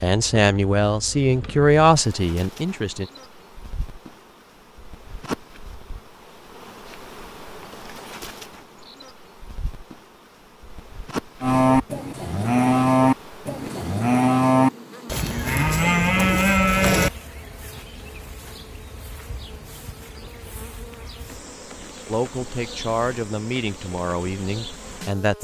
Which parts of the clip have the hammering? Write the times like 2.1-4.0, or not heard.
not heard.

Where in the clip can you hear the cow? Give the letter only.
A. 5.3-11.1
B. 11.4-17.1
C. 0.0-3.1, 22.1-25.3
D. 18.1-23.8
B.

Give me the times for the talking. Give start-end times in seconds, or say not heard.
0.0-3.1, 22.1-25.3.